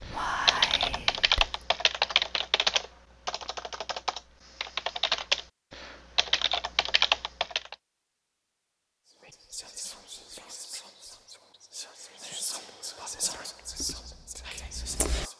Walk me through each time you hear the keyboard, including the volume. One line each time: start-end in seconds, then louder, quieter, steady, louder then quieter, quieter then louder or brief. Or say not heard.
0.1-7.8 quieter then louder
13.7-15.2 brief.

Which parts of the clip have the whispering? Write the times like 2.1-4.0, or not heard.
0.0-1.6, 9.1-15.3.